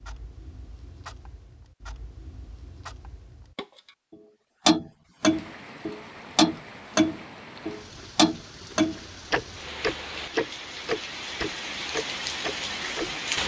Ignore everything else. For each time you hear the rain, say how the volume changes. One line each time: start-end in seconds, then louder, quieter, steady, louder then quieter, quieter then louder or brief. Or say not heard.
5.3-13.4 louder.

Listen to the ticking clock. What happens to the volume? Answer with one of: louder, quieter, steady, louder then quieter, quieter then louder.
louder then quieter.